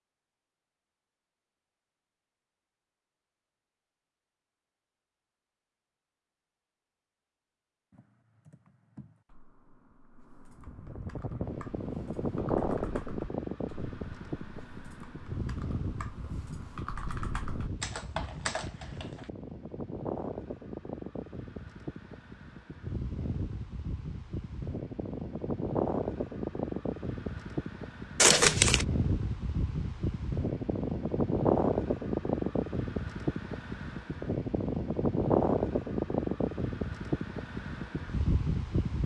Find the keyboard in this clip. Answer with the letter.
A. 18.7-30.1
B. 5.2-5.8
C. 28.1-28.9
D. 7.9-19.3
D.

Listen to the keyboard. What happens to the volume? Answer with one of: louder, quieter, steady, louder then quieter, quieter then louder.
louder.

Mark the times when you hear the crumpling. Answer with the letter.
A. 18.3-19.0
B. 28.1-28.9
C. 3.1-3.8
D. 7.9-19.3
B.